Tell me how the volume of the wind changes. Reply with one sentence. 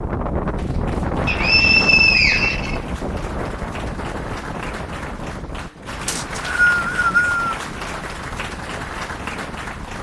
The volume of the wind goes down.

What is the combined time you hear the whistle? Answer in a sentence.
The whistle can be heard for 3 seconds in total.